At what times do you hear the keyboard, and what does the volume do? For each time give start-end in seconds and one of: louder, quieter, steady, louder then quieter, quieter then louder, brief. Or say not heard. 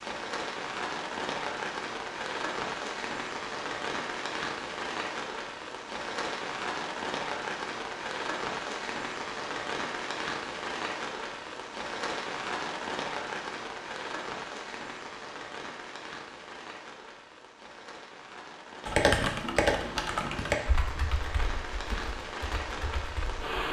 18.9-23.4 quieter.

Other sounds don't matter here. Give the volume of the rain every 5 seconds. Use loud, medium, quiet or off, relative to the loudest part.
loud, loud, loud, medium, loud.